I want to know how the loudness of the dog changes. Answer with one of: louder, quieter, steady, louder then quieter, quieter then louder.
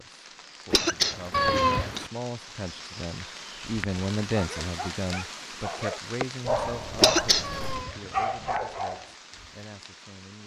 louder.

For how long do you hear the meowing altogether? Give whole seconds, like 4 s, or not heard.
2 s.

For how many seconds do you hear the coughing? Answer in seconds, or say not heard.
2 s.